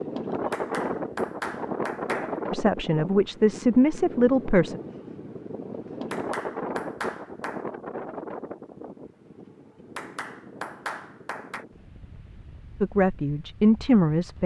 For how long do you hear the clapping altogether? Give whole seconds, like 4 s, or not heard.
5 s.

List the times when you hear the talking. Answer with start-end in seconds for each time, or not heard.
2.5-4.8, 12.8-14.4.